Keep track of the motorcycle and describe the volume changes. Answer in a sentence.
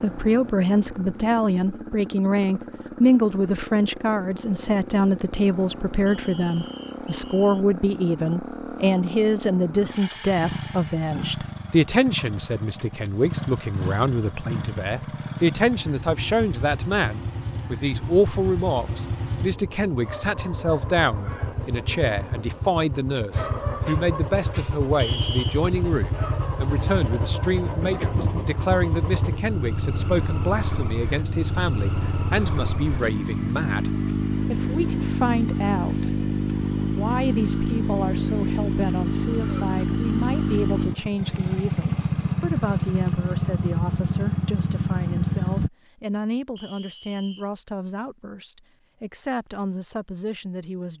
The volume of the motorcycle goes up.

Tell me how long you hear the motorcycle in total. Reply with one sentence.
You can hear the motorcycle for 46 seconds altogether.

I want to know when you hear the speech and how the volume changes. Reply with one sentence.
The speech can be heard from 0.0 to 50.9 s, getting quieter.